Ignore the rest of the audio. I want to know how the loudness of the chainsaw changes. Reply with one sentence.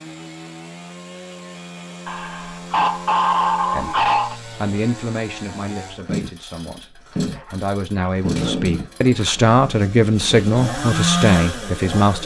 The volume of the chainsaw goes up.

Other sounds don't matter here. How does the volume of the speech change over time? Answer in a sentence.
The loudness of the speech goes down, then up.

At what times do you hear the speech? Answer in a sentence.
You can hear the speech from 3.7 to 12.2 s.